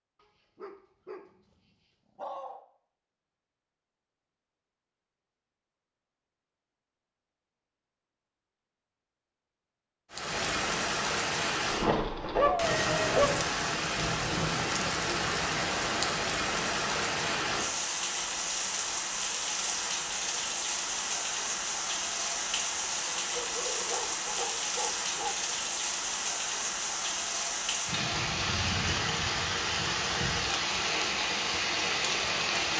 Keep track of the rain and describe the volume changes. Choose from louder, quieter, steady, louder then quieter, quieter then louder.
steady.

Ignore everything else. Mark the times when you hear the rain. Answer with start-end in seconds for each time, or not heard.
10.1-32.7.